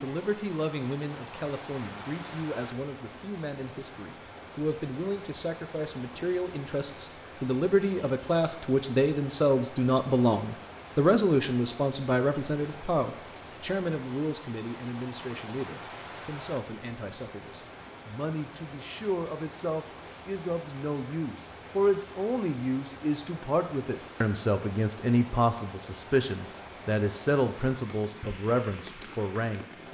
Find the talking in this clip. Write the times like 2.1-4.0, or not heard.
0.0-29.8.